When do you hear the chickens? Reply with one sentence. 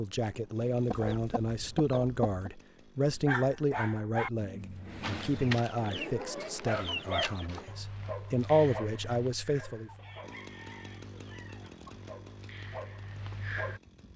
You can hear the chickens from 0.8 to 2.5 s, from 5.0 to 7.7 s and from 9.8 to 12.1 s.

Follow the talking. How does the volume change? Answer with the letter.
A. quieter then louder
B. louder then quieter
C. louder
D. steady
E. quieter
A.